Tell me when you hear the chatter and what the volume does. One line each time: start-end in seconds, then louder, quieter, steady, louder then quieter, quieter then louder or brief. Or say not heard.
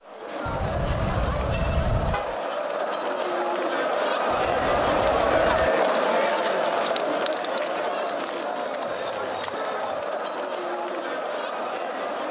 0.0-12.2 louder then quieter.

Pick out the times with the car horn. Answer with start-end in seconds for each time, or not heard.
0.5-2.4, 4.3-5.7, 8.8-9.9.